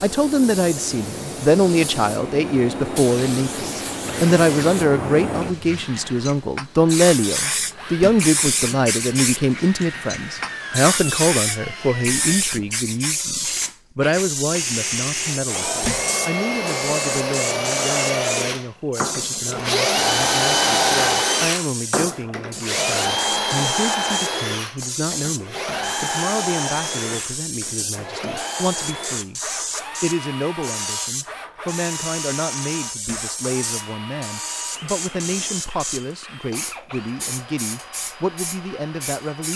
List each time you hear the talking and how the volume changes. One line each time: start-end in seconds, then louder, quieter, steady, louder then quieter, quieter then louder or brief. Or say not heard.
0.0-39.5 quieter.